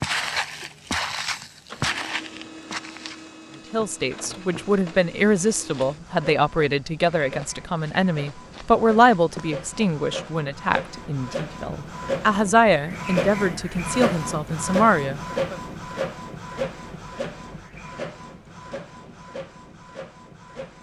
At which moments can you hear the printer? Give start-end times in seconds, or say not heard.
0.0-20.7.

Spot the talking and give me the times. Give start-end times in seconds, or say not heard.
3.7-15.6.